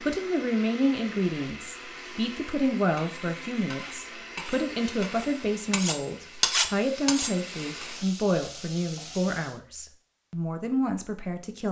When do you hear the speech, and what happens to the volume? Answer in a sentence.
The speech can be heard from 0.0 to 11.6 s, at a steady volume.